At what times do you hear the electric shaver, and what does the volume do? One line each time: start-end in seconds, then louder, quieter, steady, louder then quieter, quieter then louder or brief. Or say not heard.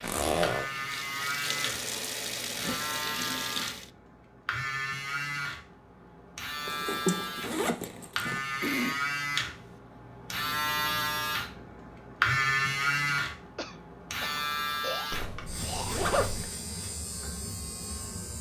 0.2-18.3 louder then quieter.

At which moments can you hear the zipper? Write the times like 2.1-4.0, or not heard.
0.0-0.7, 6.7-8.4, 15.1-16.5.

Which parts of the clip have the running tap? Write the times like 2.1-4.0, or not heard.
0.0-3.9.